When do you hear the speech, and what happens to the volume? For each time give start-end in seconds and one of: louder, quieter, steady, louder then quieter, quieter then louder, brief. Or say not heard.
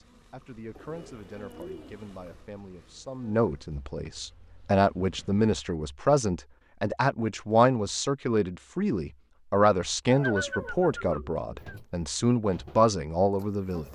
0.0-13.9 louder.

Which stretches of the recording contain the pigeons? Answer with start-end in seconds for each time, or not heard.
0.8-2.5, 10.2-11.8.